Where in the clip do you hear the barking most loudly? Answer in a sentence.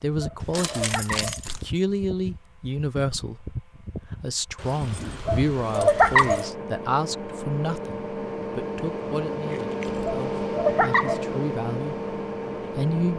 The loudest moment of the barking is at 6 seconds.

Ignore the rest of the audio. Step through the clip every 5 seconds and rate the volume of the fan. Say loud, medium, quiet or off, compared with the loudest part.
medium, loud, loud.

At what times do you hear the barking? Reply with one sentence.
The barking can be heard from 0.1 to 1.4 s, from 5.1 to 6.5 s and from 10.1 to 11.2 s.